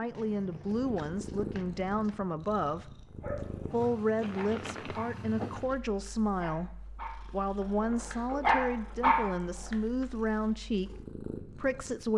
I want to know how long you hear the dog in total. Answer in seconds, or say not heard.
5 s.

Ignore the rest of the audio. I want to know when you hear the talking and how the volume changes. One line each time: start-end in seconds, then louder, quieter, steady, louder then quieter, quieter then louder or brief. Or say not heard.
0.0-3.0 brief
3.7-12.1 steady.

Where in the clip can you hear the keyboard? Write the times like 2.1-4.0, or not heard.
not heard.